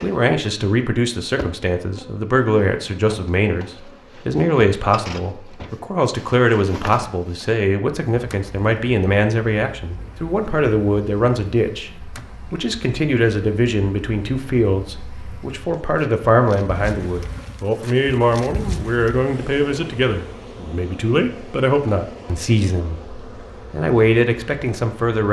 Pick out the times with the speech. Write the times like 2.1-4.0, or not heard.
0.0-25.2.